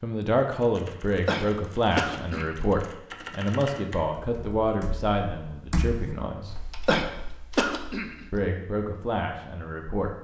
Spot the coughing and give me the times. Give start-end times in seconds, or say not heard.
1.2-2.6, 6.8-8.2.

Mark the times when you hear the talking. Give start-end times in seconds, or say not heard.
0.0-6.6, 8.3-10.2.